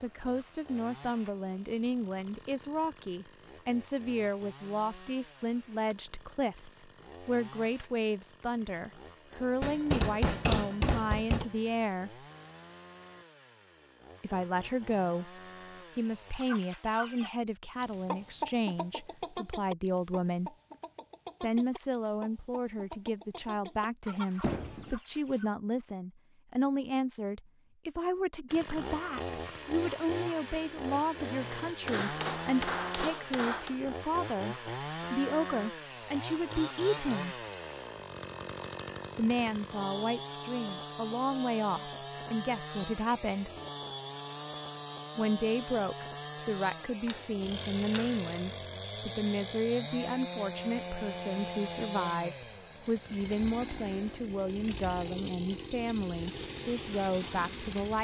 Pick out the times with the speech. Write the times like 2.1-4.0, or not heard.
0.0-12.2, 14.2-20.6, 21.4-37.4, 39.1-43.5, 45.1-57.9.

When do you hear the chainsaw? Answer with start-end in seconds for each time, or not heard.
0.0-16.4, 28.4-57.9.